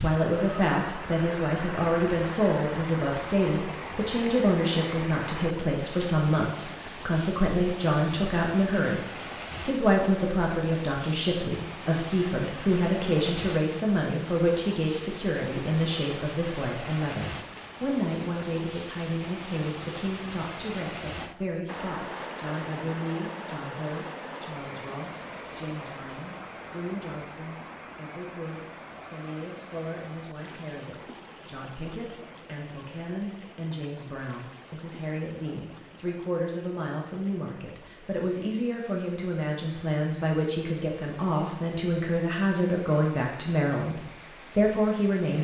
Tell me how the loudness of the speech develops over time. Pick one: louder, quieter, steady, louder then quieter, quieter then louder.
quieter then louder.